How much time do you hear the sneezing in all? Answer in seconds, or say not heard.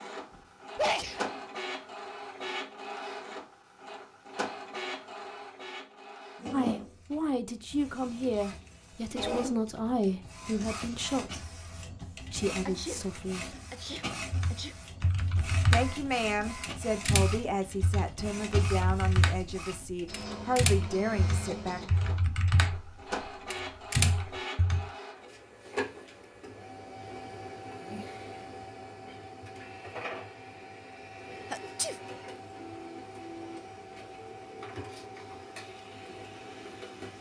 4 s.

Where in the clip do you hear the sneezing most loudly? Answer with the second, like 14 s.
1 s.